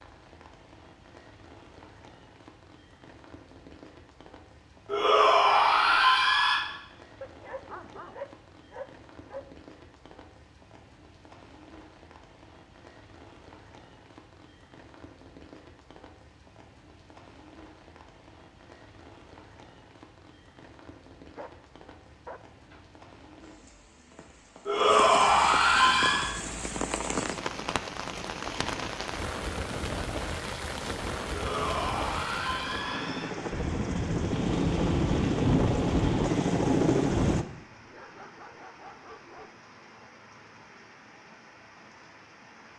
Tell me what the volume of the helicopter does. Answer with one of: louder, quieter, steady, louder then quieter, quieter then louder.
louder.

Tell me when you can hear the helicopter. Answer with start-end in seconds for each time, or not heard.
25.8-37.5.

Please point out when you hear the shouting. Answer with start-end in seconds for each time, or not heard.
4.8-6.6, 24.6-26.3, 31.3-33.3.